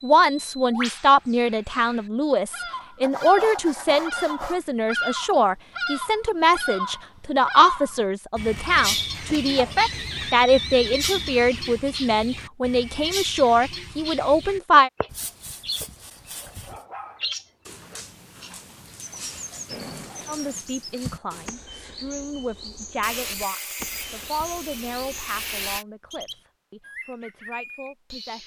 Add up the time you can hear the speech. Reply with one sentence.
You can hear the speech for 23 seconds altogether.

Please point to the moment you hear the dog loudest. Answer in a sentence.
The volume of the dog peaks at 21 seconds.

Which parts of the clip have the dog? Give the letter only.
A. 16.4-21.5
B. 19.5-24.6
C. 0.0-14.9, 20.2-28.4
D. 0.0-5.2
A.